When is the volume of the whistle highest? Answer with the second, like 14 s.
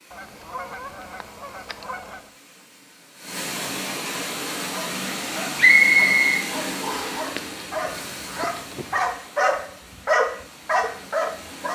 6 s.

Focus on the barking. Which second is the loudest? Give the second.
10 s.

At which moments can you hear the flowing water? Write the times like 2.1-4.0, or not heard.
0.0-11.6.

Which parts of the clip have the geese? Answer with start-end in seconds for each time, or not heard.
0.1-2.4, 7.2-9.1.